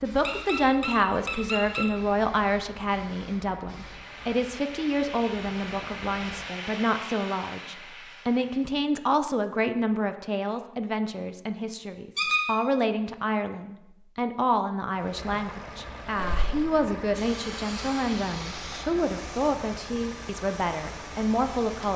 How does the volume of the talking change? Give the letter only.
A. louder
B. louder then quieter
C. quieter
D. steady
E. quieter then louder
D.